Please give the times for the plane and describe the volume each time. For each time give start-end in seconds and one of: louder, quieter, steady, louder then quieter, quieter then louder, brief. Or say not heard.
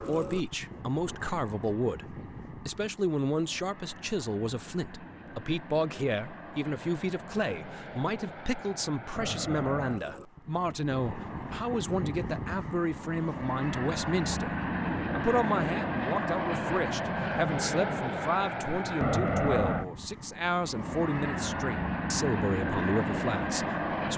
0.0-24.1 louder.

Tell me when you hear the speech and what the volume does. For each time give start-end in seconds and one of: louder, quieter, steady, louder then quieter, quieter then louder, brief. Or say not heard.
0.1-24.1 steady.